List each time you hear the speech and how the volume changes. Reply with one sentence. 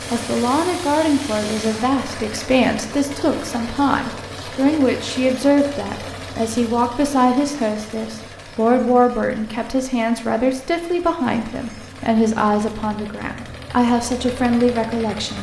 The speech can be heard from 0.1 to 15.3 s, at a steady volume.